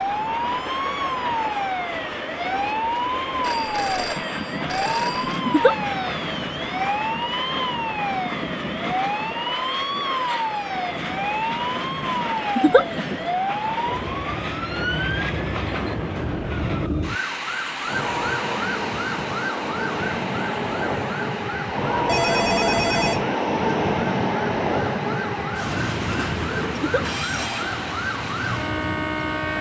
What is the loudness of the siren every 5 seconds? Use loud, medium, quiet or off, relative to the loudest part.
loud, loud, loud, loud, medium, loud.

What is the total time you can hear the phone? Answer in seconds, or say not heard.
3 s.